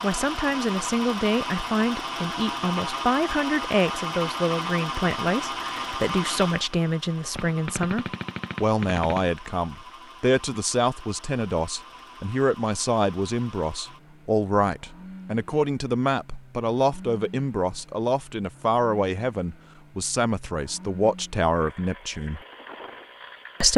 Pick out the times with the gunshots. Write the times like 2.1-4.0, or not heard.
7.3-9.3.